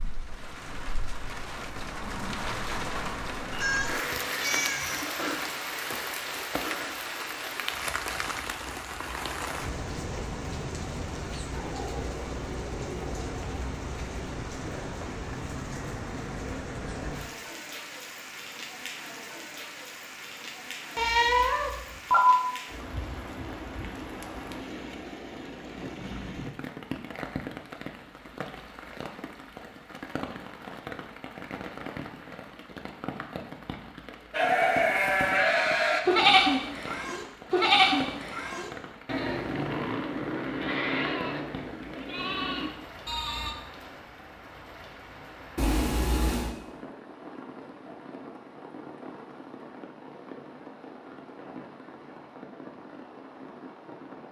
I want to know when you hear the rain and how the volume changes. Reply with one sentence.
The rain can be heard from 0.0 to 54.2 s, getting quieter.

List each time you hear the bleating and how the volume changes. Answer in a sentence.
The bleating can be heard from 34.3 to 43.5 s, getting quieter.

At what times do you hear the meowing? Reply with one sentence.
The meowing can be heard from 3.5 to 5.1 s, from 20.9 to 22.4 s and from 45.5 to 46.5 s.